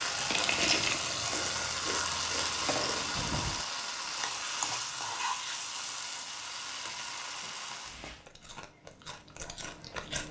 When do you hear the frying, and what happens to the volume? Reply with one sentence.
The frying can be heard from 0.0 to 8.2 s, getting quieter.